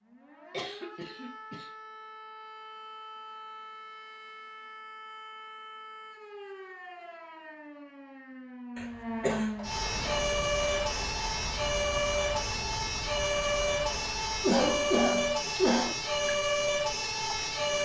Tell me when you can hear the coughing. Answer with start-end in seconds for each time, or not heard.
0.5-1.7, 8.8-9.7, 14.4-15.9.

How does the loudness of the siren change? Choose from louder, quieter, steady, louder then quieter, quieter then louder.
louder.